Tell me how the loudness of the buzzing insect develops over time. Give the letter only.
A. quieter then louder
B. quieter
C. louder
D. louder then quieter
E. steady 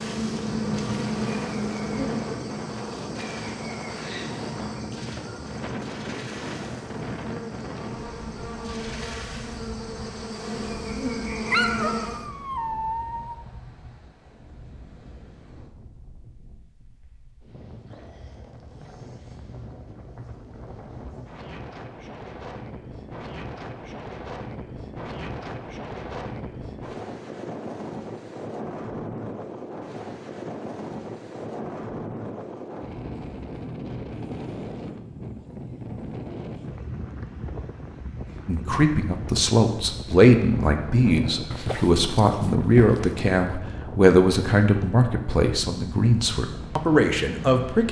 A.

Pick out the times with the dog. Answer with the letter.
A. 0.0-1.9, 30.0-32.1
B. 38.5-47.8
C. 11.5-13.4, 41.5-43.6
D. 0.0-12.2
C.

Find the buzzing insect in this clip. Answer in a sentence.
The buzzing insect can be heard from 0.0 to 12.2 s.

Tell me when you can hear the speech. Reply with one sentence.
You can hear the speech from 38.5 to 47.8 s.